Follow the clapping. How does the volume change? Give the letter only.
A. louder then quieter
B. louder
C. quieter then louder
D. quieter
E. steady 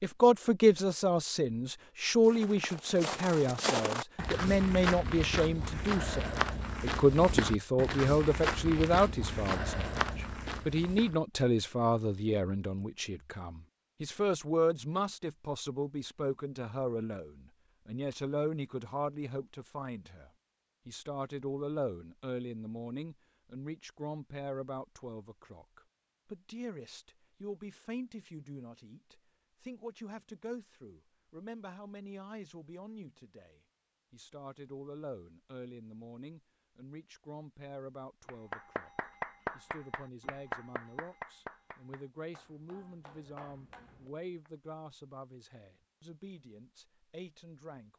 C.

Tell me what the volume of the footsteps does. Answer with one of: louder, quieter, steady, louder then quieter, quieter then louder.
steady.